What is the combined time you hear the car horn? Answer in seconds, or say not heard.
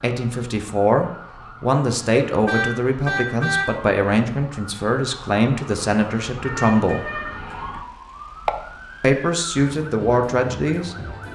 3 s.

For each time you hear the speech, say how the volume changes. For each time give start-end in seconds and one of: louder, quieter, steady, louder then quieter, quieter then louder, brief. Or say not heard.
0.0-7.0 steady
9.0-10.9 brief.